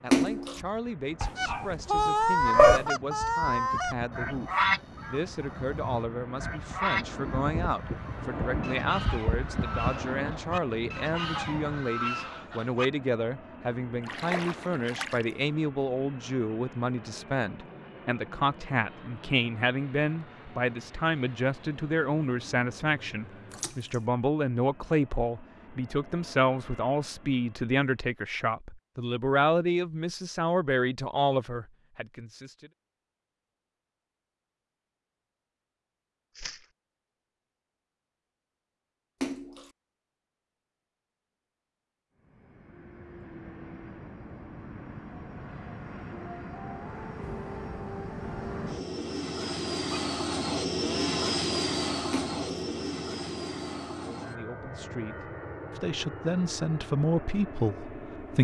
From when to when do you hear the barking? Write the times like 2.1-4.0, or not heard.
1.2-2.9.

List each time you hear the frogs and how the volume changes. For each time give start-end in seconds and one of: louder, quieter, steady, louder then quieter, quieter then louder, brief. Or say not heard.
not heard.